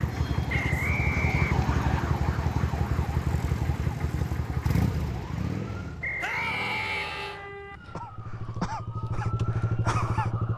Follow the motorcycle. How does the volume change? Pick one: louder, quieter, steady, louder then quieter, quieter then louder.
quieter then louder.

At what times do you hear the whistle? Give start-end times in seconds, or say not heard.
0.5-2.0, 6.0-7.5.